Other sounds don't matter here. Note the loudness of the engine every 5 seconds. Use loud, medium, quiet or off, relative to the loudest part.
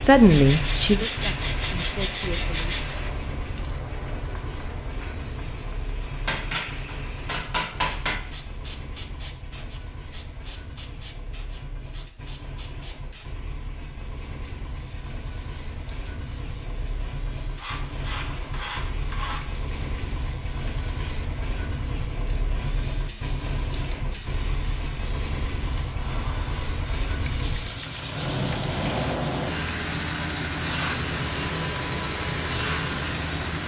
medium, quiet, quiet, medium, medium, loud, loud.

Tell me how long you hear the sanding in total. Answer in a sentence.
The sanding can be heard for 7 seconds in total.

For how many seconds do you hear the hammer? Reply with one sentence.
The hammer can be heard for 2 seconds in total.